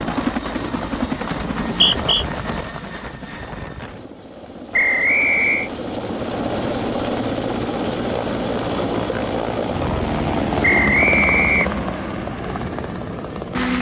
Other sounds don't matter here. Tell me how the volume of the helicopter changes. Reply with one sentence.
The volume of the helicopter goes down, then up.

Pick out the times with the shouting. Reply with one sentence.
You can't hear the shouting here.